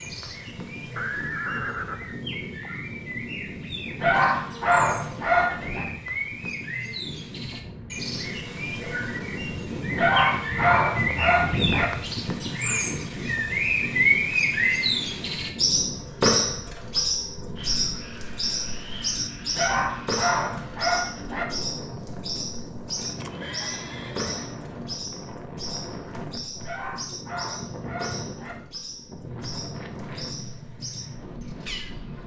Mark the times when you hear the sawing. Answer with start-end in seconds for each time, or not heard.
not heard.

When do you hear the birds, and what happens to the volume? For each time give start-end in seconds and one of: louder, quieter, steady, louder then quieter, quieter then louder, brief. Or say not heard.
0.0-32.2 louder then quieter.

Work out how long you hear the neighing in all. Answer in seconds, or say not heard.
3 s.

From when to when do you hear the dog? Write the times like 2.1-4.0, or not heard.
4.0-5.8, 9.9-11.8, 19.6-21.4, 26.6-28.6.